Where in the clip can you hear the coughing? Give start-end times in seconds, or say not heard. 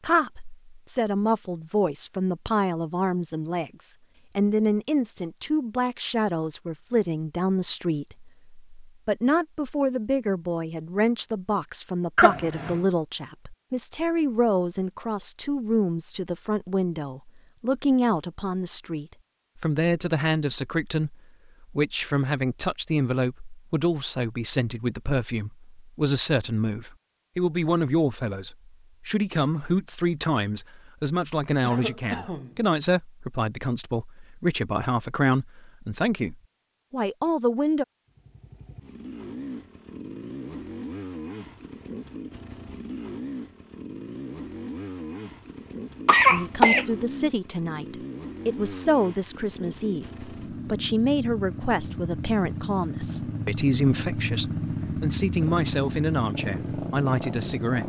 12.2-12.8, 31.6-32.6, 46.0-46.9.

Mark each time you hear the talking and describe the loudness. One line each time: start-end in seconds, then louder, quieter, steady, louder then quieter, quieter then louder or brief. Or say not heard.
0.0-37.9 steady
46.3-57.8 steady.